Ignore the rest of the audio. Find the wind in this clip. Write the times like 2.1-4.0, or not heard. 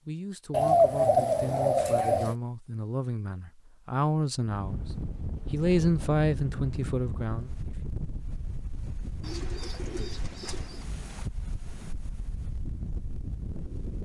4.5-14.0.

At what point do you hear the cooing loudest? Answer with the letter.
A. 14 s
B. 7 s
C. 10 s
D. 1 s
D.